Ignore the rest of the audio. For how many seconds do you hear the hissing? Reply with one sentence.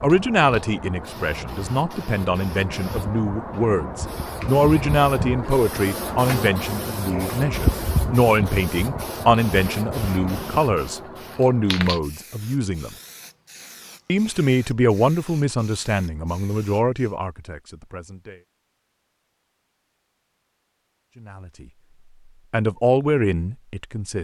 The hissing can be heard for 17 seconds in total.